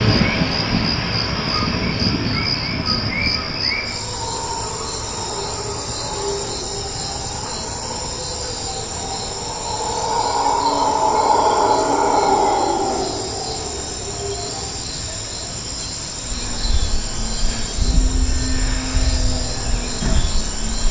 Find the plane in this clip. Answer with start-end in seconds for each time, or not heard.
0.0-3.7, 16.2-20.8.